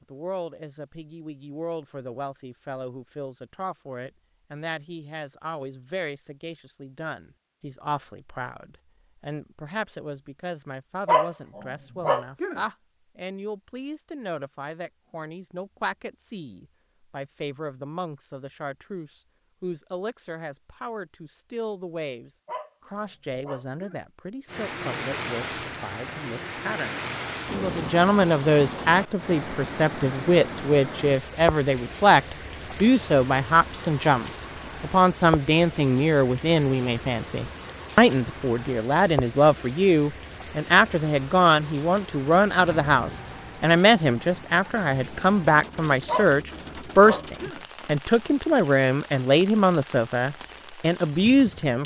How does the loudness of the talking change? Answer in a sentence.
The loudness of the talking goes up.